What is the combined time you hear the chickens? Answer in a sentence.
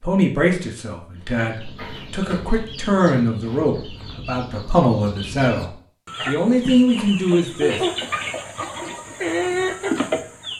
You can hear the chickens for 9 seconds altogether.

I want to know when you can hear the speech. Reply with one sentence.
You can hear the speech from 0.0 to 7.8 s.